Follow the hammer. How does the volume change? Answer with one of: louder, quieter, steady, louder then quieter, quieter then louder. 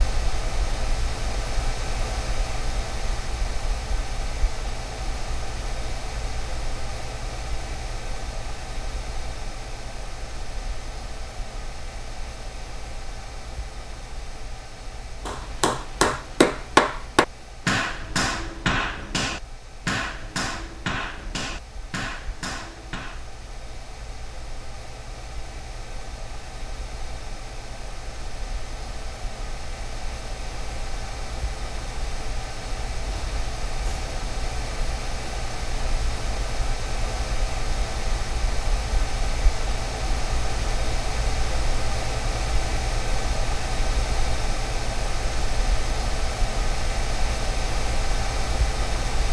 quieter.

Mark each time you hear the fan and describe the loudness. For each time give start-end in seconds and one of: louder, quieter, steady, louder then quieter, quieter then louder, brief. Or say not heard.
0.0-49.2 quieter then louder.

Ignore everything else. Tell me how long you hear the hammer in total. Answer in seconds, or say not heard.
8 s.